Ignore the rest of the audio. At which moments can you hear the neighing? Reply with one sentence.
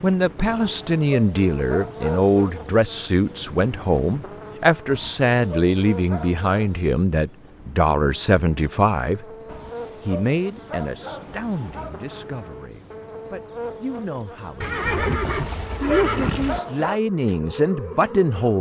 The neighing can be heard from 14.6 to 16.6 s.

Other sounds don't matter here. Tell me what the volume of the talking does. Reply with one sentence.
The volume of the talking goes down, then up.